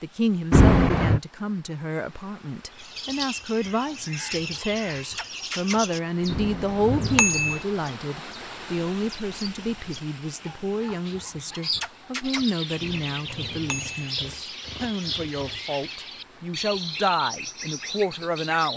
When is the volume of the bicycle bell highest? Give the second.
1 s.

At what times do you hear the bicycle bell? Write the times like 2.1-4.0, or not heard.
0.5-1.2, 6.3-7.6, 12.8-14.1.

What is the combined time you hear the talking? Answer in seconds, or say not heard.
19 s.